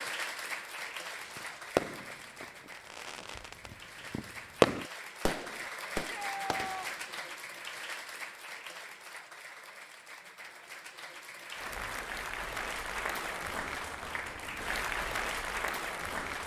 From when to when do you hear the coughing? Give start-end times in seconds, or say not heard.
not heard.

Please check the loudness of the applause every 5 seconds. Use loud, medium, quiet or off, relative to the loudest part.
medium, medium, loud, loud.